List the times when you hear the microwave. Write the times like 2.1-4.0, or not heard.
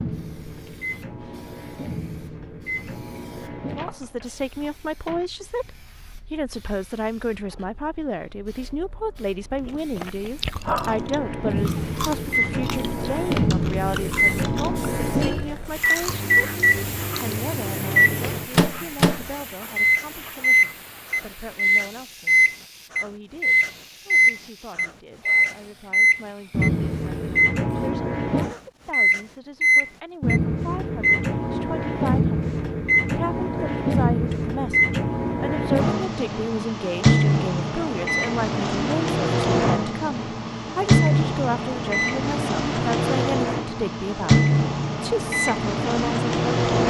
0.0-5.2, 10.8-46.8.